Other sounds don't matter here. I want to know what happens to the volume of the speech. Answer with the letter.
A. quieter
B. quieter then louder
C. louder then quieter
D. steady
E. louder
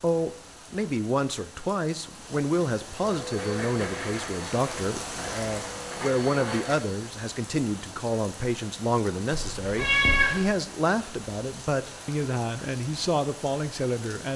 D.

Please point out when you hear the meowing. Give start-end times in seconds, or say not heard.
9.3-10.4.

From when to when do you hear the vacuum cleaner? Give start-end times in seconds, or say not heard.
3.0-7.0.